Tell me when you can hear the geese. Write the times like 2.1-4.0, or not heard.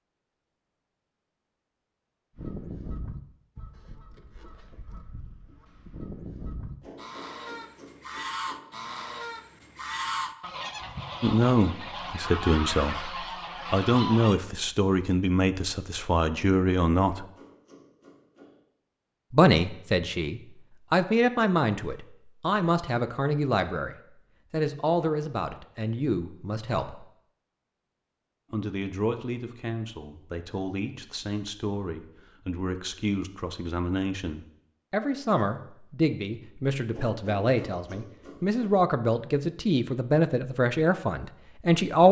2.4-14.4.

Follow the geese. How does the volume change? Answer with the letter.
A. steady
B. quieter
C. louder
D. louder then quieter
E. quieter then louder
C.